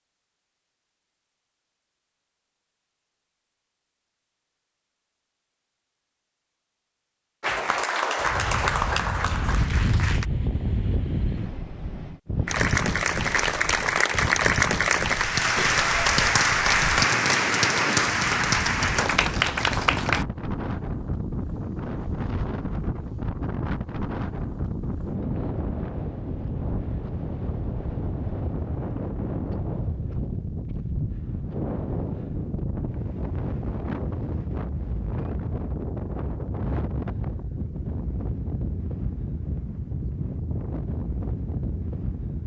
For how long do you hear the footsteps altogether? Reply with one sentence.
The footsteps can't be heard in this clip.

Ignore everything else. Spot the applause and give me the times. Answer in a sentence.
You can hear the applause from 7.4 to 10.2 s and from 12.4 to 20.2 s.